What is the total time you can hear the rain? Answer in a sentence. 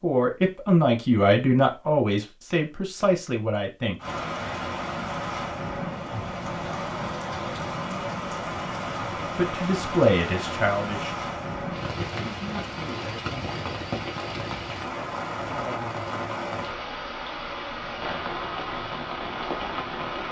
The rain can be heard for 16 seconds in total.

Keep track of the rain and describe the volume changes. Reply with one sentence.
The loudness of the rain stays about the same.